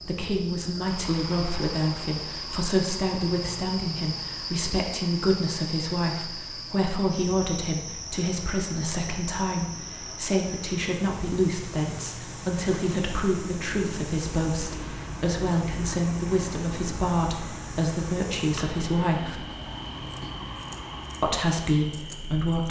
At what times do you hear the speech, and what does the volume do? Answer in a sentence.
You can hear the speech from 0.0 to 19.4 s, at a steady volume; and briefly from 21.2 to 22.6 s.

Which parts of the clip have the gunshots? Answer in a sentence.
The gunshots can't be heard in this clip.